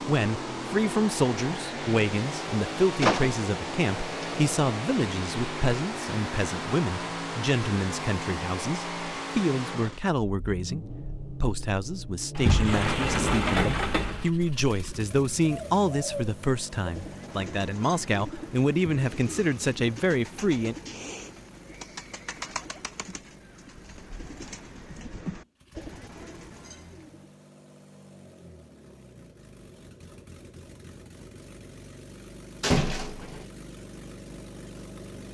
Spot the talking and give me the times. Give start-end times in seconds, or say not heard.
0.0-20.8.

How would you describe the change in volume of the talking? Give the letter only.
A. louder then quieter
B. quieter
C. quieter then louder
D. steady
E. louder
D.